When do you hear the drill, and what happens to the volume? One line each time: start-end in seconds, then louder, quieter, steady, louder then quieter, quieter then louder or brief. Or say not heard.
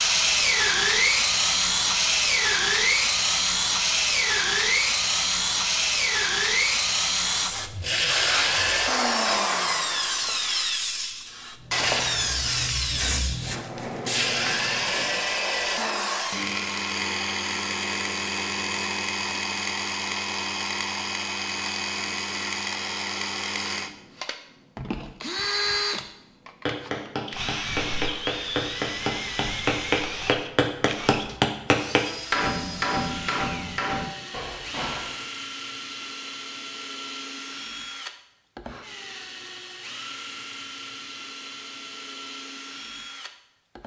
0.0-43.8 quieter.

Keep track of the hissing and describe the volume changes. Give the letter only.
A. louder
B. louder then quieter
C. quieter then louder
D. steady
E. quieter
C.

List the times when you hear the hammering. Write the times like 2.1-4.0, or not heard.
26.6-35.2.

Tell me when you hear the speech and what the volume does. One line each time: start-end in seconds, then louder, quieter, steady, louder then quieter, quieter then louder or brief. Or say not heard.
not heard.